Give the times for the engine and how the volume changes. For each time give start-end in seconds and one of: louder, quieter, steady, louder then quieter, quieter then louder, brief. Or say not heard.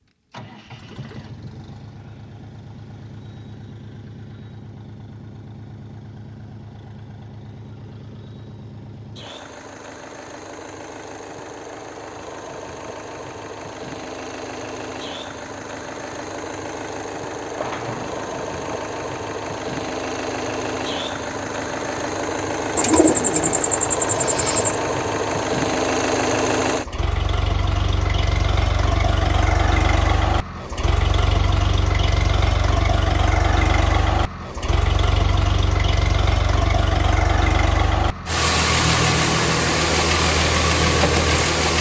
0.0-41.7 louder.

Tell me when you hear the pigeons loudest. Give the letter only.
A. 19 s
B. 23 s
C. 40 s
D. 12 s
B.